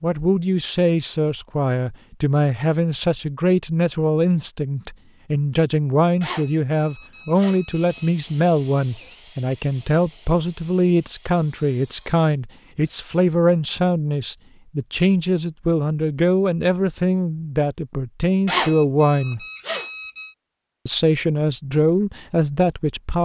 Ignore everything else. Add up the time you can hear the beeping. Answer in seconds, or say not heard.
4 s.